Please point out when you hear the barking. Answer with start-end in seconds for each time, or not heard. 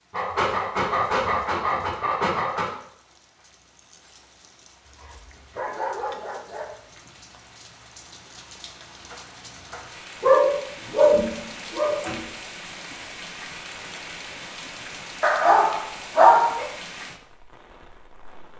0.1-2.8, 4.8-7.1, 10.2-12.2, 15.2-16.6.